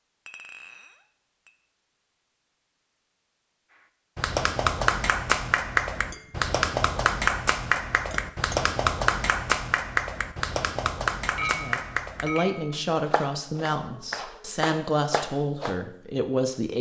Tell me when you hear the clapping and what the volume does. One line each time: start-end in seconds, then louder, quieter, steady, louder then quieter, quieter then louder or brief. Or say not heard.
4.2-15.8 quieter.